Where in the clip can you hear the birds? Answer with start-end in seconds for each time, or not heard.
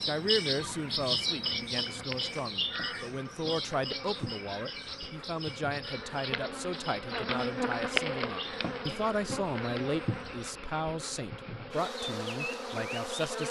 0.0-10.6.